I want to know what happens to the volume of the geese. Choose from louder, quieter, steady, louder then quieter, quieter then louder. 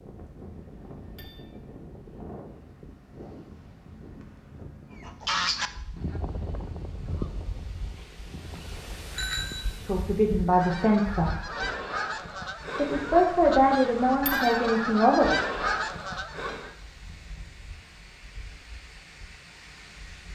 quieter then louder.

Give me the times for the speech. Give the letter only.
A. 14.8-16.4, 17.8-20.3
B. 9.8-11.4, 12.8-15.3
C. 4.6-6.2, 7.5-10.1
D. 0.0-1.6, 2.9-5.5
B.